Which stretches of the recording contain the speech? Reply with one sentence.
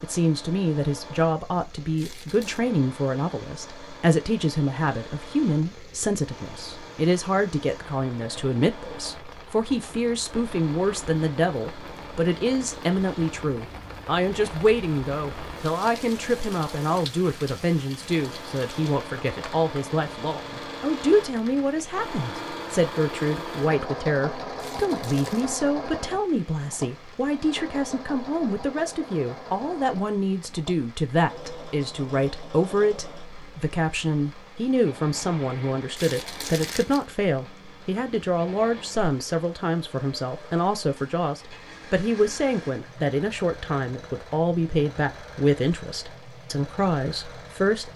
You can hear the speech from 0.0 to 47.9 s.